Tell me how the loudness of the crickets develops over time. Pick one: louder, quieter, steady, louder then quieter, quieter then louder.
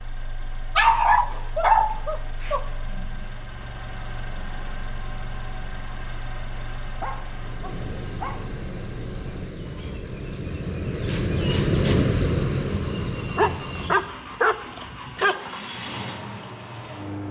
louder then quieter.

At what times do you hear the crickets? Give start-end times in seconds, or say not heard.
7.2-17.2.